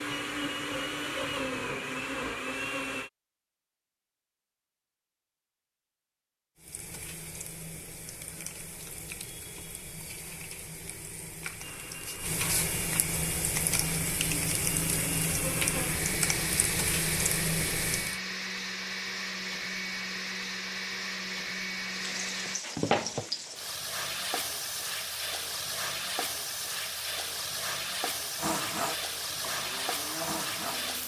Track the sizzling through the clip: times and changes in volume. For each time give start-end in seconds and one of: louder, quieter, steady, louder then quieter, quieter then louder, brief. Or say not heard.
6.5-18.2 louder
21.9-31.0 steady.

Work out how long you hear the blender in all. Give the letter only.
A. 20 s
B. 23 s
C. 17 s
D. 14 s
C.